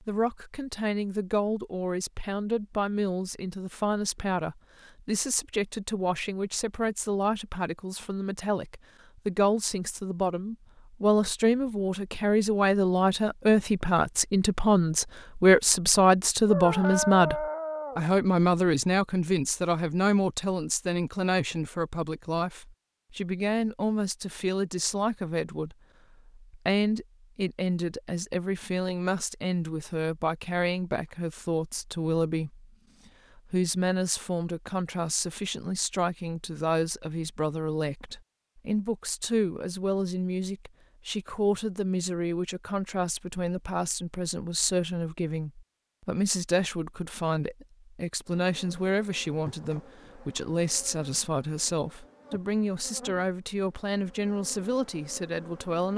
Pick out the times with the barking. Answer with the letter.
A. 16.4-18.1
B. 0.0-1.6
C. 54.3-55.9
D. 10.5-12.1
A.